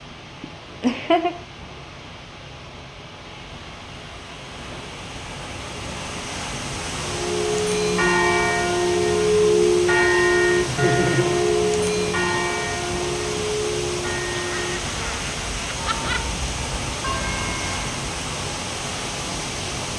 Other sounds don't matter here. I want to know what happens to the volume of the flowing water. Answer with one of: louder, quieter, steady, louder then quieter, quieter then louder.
louder.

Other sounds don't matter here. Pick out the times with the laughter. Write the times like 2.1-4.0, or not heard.
0.4-1.4, 10.7-11.3, 14.3-16.2.